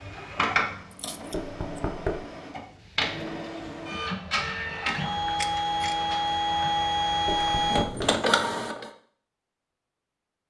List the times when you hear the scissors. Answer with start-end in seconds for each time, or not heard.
0.9-1.8, 5.3-6.0.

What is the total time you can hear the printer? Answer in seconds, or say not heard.
9 s.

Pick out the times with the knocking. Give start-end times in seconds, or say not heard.
1.3-2.2, 7.2-8.1.